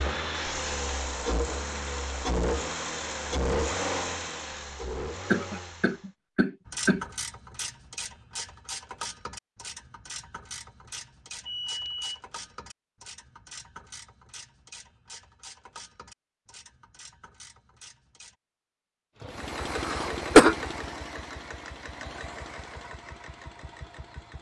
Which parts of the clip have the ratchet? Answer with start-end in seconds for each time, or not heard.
6.7-18.4.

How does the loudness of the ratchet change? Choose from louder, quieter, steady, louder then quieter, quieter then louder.
quieter.